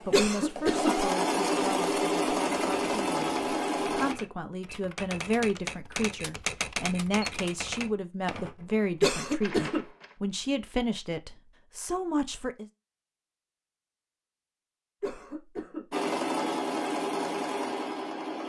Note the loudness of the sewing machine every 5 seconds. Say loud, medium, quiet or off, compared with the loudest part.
loud, off, off, loud.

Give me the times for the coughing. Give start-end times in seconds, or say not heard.
0.1-0.9, 9.0-9.8, 15.0-15.8.